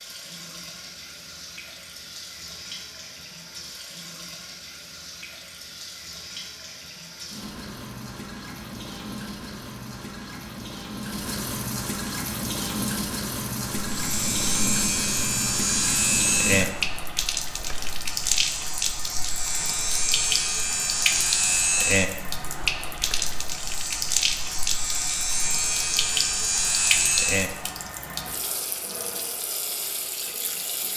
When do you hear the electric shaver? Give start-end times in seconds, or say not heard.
13.9-27.7.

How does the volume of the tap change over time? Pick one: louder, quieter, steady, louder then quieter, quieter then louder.
louder.